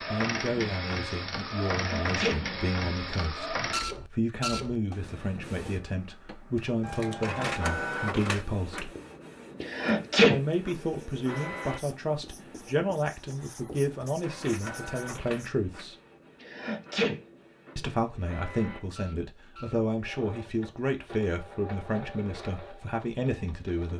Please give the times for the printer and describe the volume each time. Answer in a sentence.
The printer can be heard from 0.0 to 23.9 s, getting quieter.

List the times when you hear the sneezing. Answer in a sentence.
The sneezing can be heard from 1.7 to 2.4 s, from 9.6 to 10.4 s and from 16.4 to 17.2 s.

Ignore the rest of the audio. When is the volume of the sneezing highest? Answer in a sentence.
The loudest moment of the sneezing is at 10 seconds.